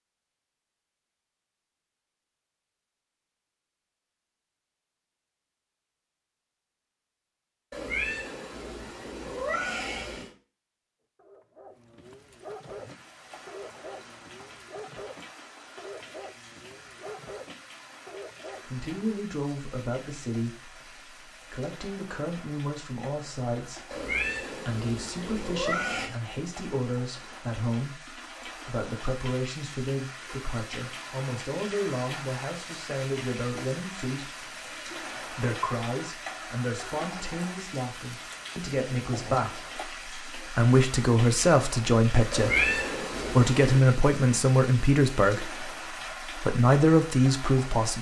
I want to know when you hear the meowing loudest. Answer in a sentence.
The loudest moment of the meowing is at 43 seconds.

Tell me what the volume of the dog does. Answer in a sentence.
The loudness of the dog stays about the same.